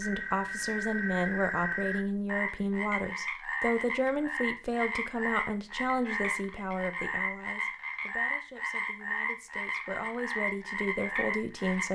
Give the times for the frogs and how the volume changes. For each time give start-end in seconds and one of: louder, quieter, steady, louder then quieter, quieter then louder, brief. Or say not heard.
0.0-11.9 steady.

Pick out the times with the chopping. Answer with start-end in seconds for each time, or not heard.
not heard.